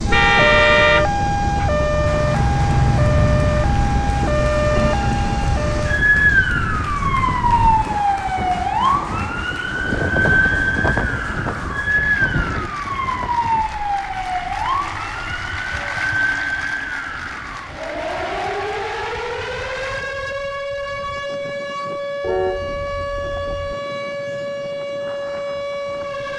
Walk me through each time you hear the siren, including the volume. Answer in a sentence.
The siren can be heard from 0.0 to 26.3 s, getting quieter.